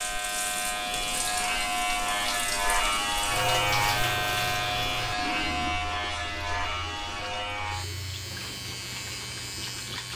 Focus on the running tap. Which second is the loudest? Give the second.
4 s.